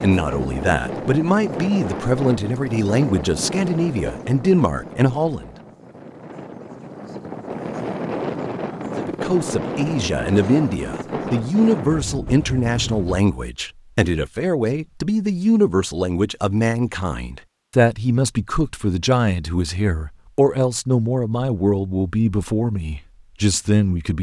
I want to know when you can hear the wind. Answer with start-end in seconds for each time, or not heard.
0.0-13.2.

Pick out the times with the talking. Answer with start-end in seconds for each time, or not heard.
0.0-5.5, 8.9-24.1.